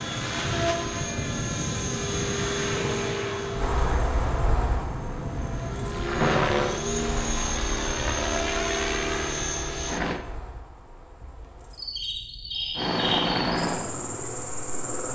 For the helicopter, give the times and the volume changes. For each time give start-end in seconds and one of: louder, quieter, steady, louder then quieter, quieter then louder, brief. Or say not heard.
0.0-10.2 quieter then louder
12.8-15.0 brief.